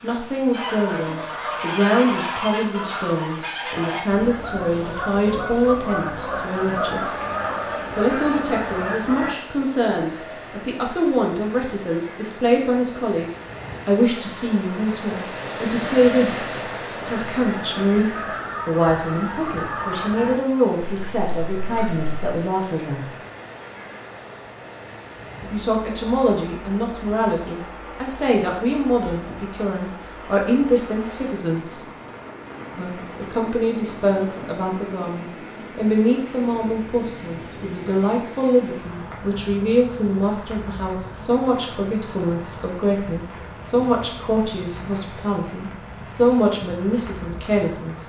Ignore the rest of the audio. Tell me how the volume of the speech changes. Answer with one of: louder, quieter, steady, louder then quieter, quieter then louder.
steady.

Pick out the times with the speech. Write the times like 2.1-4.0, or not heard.
0.0-7.1, 8.0-23.1, 25.5-31.9, 32.8-48.0.